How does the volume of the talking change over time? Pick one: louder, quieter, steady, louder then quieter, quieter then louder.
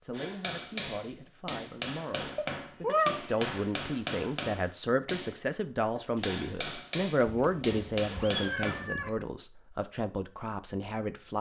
louder then quieter.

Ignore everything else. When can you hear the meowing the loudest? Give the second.
3 s.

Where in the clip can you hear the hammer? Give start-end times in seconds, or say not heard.
0.1-8.9.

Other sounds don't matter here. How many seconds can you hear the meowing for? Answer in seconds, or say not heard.
3 s.